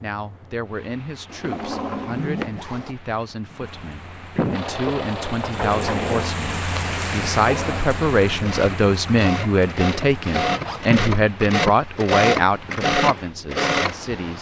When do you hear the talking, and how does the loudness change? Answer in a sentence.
The talking can be heard from 0.0 to 14.3 s, getting louder.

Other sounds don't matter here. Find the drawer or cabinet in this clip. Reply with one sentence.
The drawer or cabinet can be heard from 1.3 to 2.5 s, from 4.8 to 6.3 s and from 10.2 to 10.9 s.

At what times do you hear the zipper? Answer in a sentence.
The zipper can be heard from 1.9 to 3.0 s and from 10.6 to 11.0 s.